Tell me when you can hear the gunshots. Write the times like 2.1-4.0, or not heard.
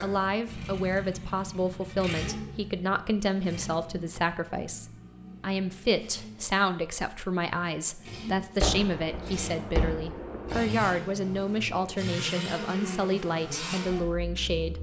8.6-11.9.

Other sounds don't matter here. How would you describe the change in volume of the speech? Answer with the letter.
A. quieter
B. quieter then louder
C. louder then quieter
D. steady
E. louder
D.